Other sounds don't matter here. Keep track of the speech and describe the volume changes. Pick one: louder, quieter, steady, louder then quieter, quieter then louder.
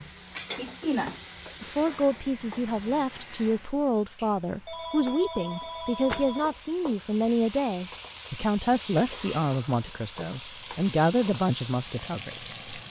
steady.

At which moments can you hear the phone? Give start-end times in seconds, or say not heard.
4.2-6.6.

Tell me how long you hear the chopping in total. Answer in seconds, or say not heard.
not heard.